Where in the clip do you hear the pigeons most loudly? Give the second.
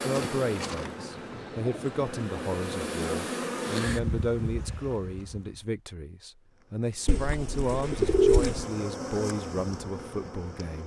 8 s.